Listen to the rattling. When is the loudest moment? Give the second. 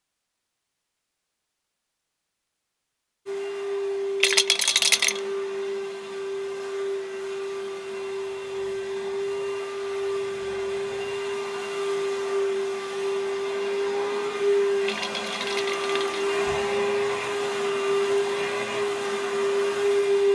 5 s.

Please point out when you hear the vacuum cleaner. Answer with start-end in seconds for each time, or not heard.
3.2-20.3.